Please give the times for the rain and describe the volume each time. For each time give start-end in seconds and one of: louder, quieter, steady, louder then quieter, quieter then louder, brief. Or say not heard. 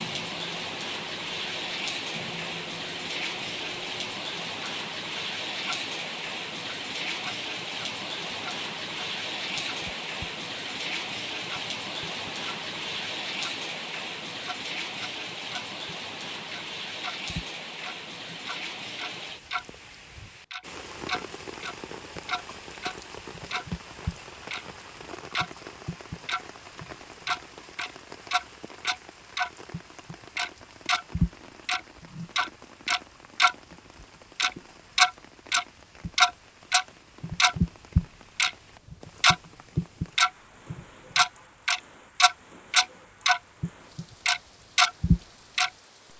0.0-46.1 quieter.